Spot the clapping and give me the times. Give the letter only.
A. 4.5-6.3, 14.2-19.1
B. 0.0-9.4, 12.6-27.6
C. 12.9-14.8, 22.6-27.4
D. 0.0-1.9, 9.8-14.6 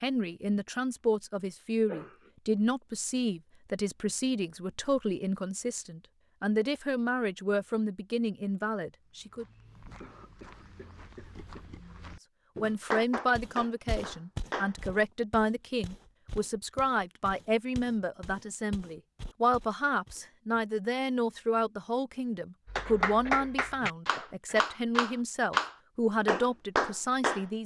C.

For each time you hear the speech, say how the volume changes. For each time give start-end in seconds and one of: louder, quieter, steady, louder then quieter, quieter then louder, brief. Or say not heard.
0.0-9.4 steady
12.6-27.6 steady.